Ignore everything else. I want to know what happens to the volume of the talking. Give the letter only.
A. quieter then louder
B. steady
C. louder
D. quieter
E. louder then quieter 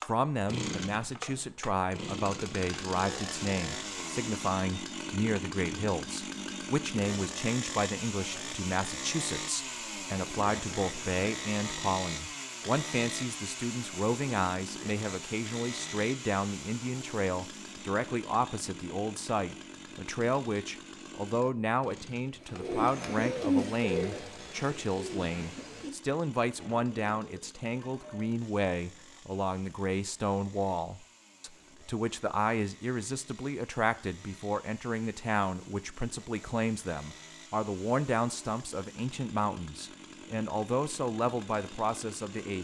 B.